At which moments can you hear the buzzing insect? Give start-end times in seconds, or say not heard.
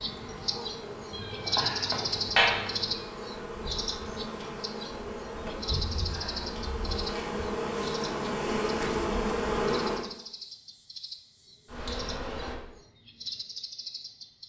0.0-12.6.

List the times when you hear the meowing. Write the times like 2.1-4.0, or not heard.
1.1-3.0.